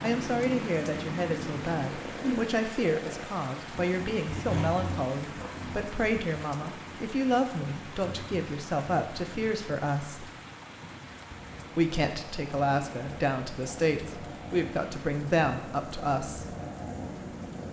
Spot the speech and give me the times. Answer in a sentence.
You can hear the speech from 0.0 to 10.2 s and from 11.8 to 16.6 s.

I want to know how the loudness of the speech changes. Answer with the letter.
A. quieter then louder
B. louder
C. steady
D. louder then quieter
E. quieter
C.